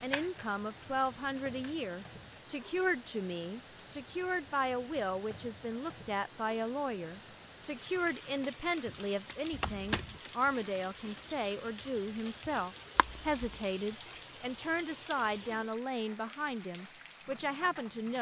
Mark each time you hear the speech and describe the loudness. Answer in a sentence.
The speech can be heard from 0.0 to 18.1 s, at a steady volume.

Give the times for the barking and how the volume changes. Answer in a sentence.
You can't hear the barking here.